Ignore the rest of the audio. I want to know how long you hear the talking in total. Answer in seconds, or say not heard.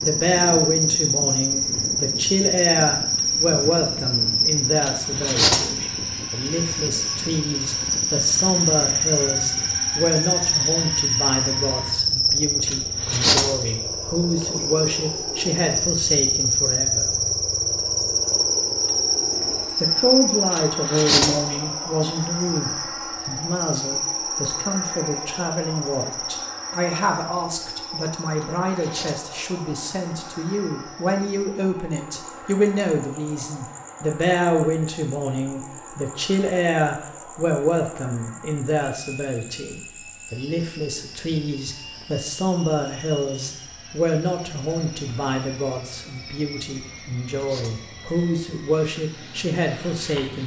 48 s.